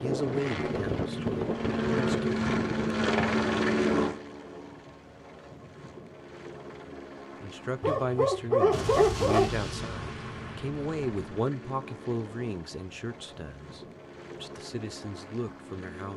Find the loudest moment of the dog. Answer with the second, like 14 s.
9 s.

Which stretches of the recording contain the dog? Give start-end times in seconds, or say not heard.
7.8-9.5.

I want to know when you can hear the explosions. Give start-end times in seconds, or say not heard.
8.7-11.4.